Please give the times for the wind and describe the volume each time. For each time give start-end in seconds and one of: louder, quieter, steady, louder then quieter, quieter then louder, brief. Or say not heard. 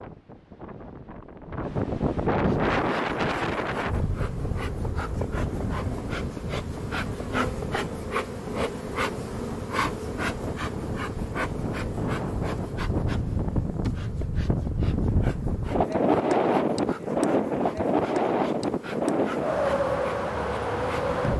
0.0-21.3 quieter then louder.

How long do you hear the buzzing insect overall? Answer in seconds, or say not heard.
19 s.